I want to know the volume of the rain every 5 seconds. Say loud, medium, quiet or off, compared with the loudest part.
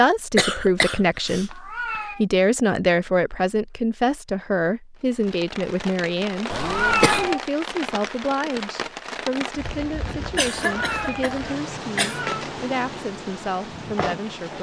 off, loud, loud.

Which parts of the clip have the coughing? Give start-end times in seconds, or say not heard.
0.3-2.0, 6.5-7.3, 10.3-12.2.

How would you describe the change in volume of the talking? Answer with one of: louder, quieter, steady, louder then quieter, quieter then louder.
quieter.